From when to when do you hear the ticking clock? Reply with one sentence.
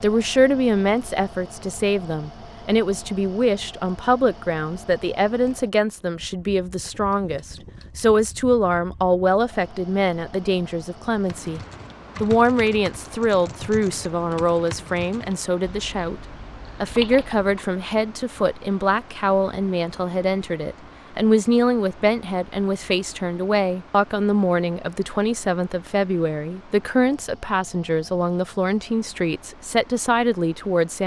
The ticking clock can't be heard in this clip.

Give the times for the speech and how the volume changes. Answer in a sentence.
The speech can be heard from 0.0 to 11.6 s, at a steady volume; and from 12.2 to 31.0 s, at a steady volume.